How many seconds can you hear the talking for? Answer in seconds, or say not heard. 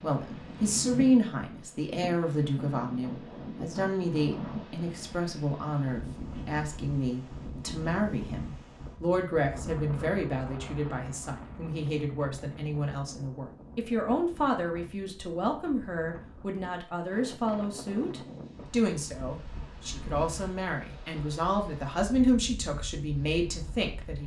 24 s.